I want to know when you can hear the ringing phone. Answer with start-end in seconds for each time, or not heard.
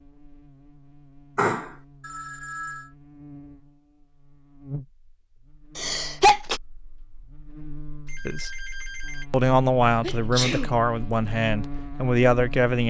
2.0-3.0, 8.1-9.3.